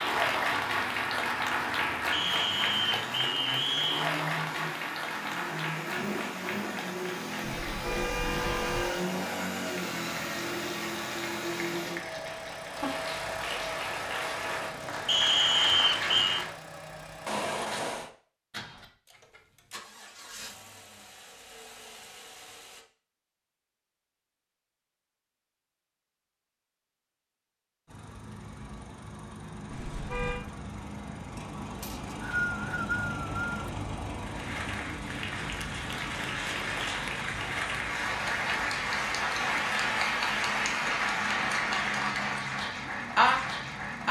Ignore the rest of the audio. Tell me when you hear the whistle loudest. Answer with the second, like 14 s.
16 s.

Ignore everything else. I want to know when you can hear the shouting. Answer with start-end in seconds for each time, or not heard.
not heard.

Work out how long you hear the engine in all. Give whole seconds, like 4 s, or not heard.
39 s.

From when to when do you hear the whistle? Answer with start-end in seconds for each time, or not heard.
2.1-4.1, 15.1-16.4, 31.8-33.5.